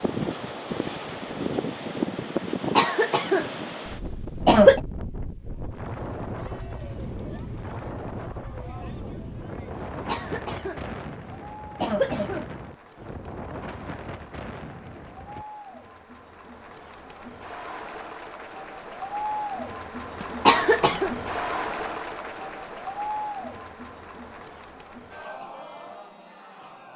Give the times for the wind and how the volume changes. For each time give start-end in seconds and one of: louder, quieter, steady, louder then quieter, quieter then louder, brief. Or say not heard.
0.0-15.4 quieter.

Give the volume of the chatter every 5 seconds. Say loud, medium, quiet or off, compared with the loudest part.
off, quiet, quiet, loud, loud, medium.